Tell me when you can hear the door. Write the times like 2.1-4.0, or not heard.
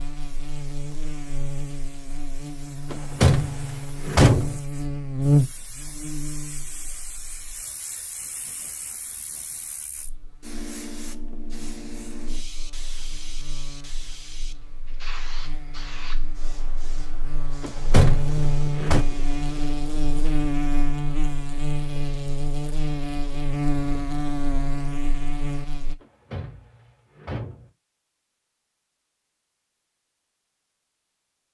2.9-4.6, 17.6-19.1, 26.0-27.7.